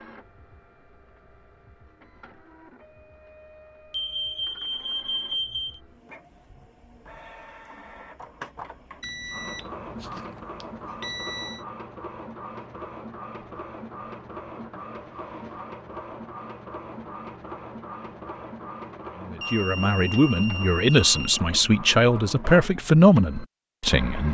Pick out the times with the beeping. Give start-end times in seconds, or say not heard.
3.9-5.8, 9.0-11.7, 19.4-21.1.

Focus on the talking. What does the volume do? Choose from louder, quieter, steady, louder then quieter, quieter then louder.
louder.